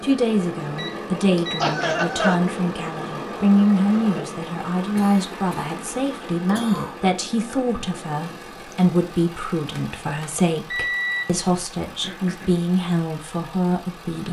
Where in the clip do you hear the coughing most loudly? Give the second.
2 s.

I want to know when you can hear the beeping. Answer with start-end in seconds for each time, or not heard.
0.8-1.6, 9.8-11.2.